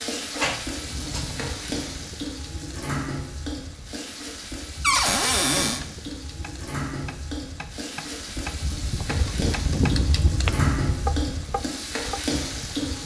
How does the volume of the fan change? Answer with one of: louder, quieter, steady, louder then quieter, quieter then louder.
louder.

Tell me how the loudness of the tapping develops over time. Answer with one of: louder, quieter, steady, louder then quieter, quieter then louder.
louder.